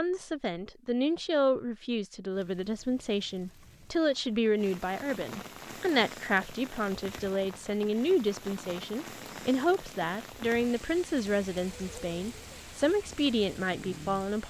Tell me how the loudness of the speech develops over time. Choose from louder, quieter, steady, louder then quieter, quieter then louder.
steady.